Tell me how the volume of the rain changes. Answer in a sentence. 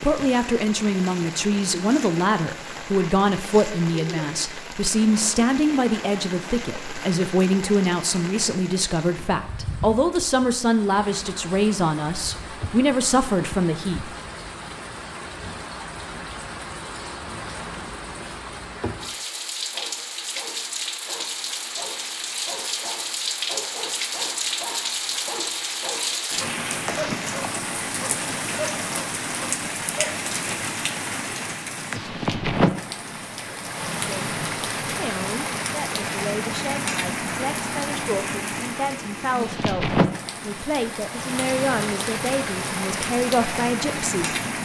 The loudness of the rain goes up.